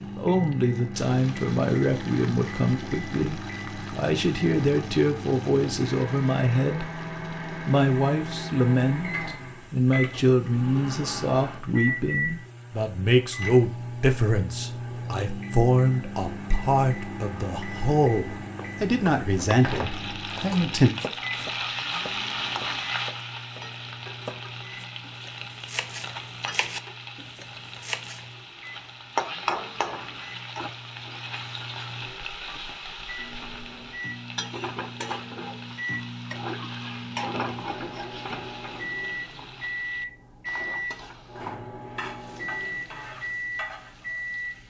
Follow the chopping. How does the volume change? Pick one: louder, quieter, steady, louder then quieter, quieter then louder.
quieter then louder.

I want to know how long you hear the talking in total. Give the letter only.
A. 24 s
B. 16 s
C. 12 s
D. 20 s
D.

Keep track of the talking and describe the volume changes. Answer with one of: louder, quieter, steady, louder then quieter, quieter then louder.
steady.